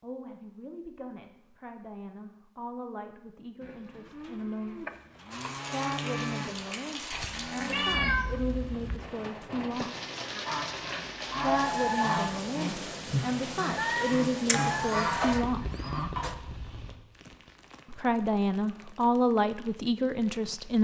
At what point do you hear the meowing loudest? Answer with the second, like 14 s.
8 s.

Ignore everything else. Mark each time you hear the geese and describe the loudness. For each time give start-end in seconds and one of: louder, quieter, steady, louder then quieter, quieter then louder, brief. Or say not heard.
10.3-16.4 steady.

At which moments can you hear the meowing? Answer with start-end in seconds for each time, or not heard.
7.1-8.4, 15.0-16.4.